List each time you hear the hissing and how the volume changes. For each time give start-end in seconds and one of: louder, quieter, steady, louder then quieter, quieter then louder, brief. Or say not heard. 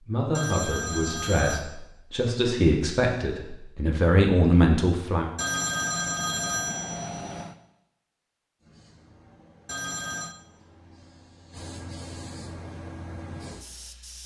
8.6-14.2 louder.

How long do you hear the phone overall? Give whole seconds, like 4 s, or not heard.
4 s.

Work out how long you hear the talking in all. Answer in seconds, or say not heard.
5 s.